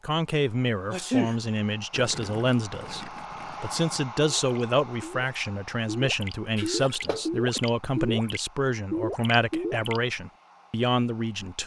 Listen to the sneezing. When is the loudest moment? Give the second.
1 s.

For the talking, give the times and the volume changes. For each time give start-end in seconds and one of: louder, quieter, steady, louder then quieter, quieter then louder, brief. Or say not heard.
0.0-11.6 steady.